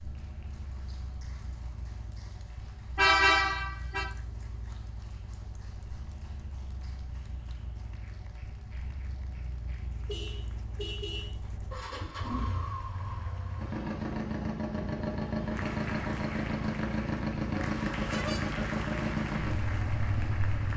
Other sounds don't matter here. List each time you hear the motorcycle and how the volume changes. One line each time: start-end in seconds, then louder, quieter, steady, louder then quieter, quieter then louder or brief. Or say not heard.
0.0-20.7 louder.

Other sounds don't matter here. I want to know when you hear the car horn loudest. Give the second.
3 s.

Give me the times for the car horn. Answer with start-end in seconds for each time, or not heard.
3.0-4.0, 10.1-11.3, 17.9-18.5.